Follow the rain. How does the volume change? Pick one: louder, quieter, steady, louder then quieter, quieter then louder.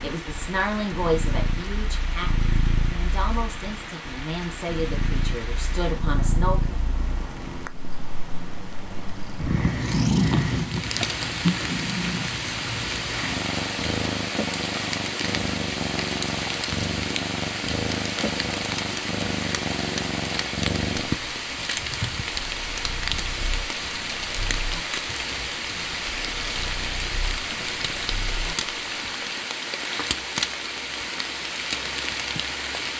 louder.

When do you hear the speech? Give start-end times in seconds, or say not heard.
0.0-6.8.